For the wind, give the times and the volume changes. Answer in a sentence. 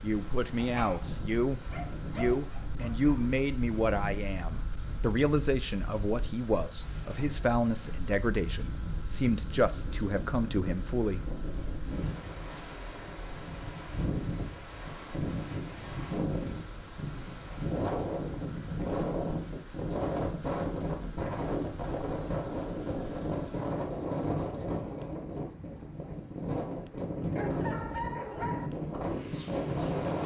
The wind can be heard from 0.0 to 30.2 s, getting louder.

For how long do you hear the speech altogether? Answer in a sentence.
You can hear the speech for 11 seconds altogether.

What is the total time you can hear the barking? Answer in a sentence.
The barking can be heard for 4 seconds in total.